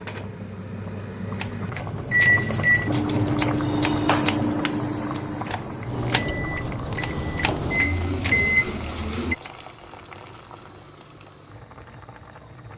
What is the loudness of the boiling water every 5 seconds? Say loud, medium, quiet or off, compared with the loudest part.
loud, medium, quiet.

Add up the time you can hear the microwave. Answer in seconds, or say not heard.
7 s.